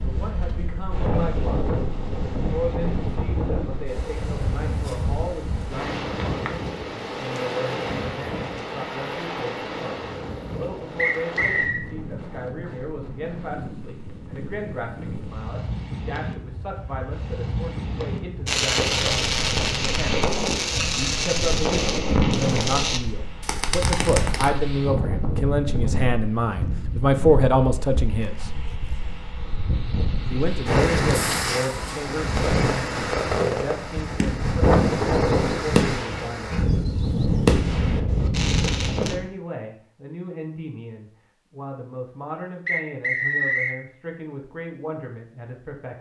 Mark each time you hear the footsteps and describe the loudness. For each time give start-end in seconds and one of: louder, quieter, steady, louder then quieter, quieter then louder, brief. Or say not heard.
not heard.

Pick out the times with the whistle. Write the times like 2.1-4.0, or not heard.
10.9-11.8, 42.6-43.8.